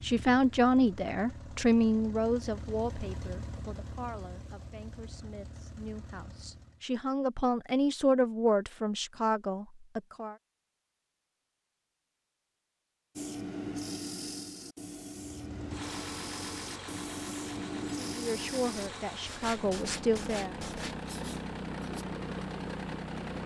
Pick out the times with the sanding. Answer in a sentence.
You can hear the sanding from 13.2 to 22.1 s.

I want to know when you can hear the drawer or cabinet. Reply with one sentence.
The drawer or cabinet can't be heard in this clip.